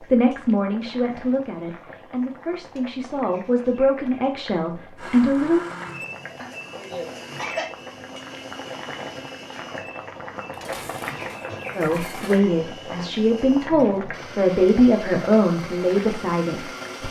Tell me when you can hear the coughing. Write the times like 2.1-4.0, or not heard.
6.3-7.7.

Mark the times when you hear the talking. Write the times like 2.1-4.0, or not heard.
0.0-5.7, 11.8-17.0.